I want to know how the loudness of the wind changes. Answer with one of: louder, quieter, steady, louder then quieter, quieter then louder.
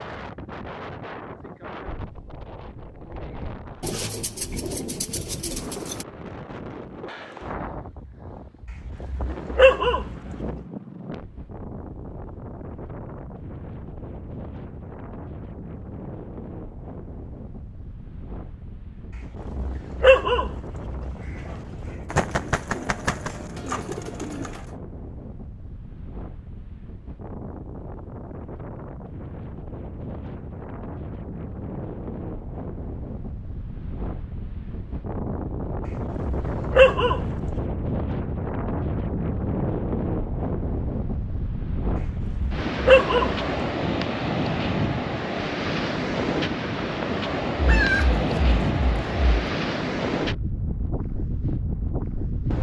louder.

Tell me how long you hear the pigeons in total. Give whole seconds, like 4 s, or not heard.
7 s.